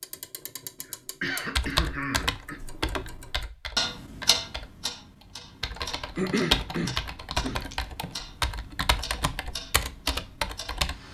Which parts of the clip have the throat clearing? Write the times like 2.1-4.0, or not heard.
0.8-2.6, 6.2-7.7.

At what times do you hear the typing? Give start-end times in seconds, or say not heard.
1.6-10.9.